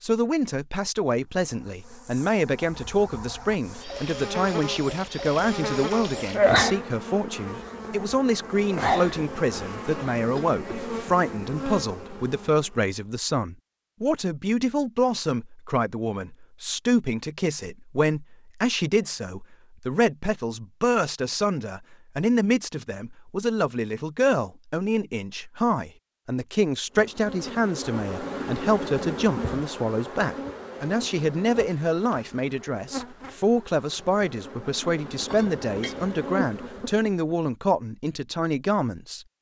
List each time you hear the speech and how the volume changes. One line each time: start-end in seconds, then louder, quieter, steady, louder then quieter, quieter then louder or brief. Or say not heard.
0.0-39.2 steady.